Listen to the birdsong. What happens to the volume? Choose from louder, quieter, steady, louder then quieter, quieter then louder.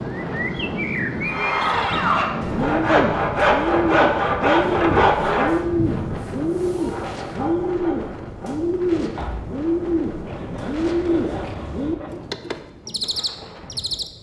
steady.